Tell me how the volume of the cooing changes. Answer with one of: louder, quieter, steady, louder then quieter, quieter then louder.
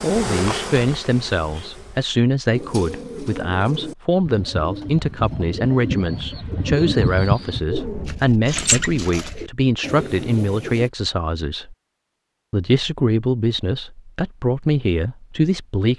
louder then quieter.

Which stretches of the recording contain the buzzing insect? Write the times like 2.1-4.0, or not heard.
0.0-2.1.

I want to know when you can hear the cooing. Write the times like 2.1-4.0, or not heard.
2.5-10.9.